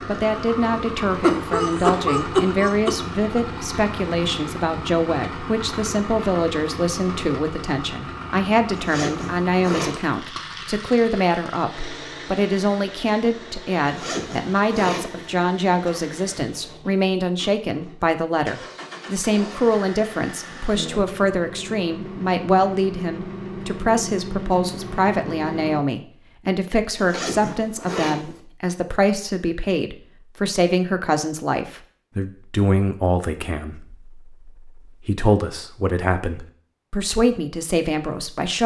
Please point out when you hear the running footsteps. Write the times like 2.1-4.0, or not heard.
not heard.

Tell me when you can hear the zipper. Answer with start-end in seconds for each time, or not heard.
8.8-10.2, 13.8-15.3, 26.9-28.4.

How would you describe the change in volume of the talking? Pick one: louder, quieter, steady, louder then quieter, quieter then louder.
steady.